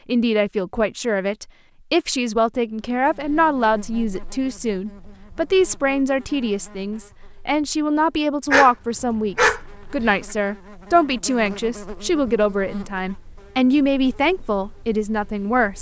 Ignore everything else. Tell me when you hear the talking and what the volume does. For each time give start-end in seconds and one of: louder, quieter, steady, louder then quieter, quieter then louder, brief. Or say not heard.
0.1-15.7 steady.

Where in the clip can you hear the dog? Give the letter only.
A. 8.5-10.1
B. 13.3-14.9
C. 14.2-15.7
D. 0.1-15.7
A.